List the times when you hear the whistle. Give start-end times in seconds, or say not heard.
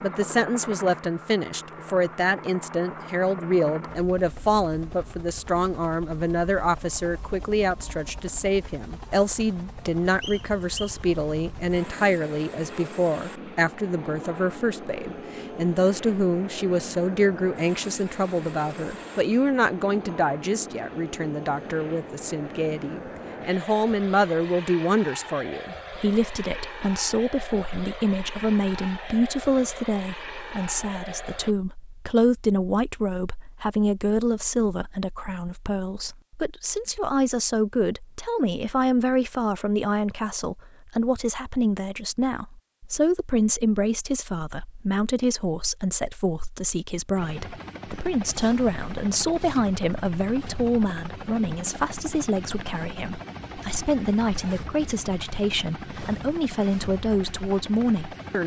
10.2-11.0.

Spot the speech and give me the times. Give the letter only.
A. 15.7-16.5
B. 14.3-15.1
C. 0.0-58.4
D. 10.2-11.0
C.